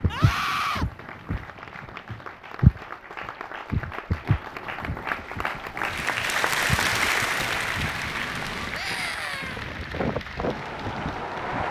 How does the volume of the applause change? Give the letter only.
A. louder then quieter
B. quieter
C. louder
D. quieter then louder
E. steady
A.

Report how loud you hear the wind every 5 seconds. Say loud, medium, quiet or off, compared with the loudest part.
quiet, medium, loud.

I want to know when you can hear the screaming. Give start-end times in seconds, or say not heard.
0.1-0.8, 8.7-9.7.